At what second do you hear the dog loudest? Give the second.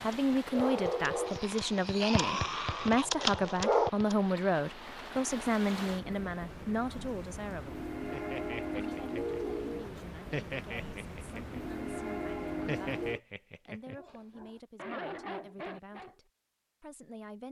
4 s.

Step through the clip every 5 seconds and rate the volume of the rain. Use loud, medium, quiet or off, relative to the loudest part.
medium, loud, loud, off.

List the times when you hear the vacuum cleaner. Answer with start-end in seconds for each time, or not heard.
not heard.